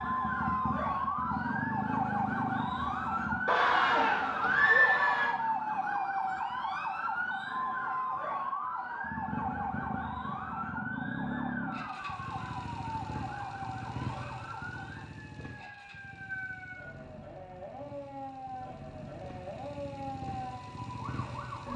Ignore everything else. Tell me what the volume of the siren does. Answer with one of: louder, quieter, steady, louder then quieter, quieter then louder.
quieter.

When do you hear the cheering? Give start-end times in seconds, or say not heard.
3.5-5.3.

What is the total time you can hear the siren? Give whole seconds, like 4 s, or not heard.
22 s.